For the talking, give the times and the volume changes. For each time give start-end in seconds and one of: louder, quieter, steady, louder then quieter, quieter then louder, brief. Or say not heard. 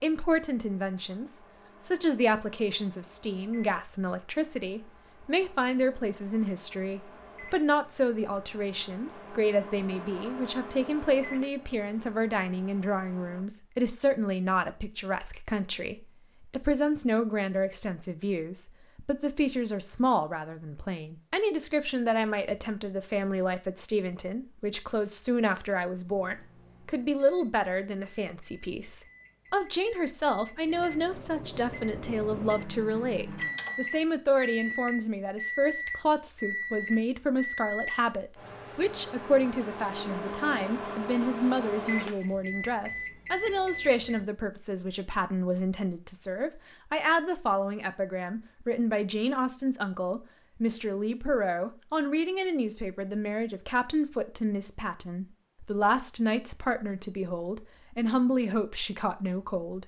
0.0-59.8 steady.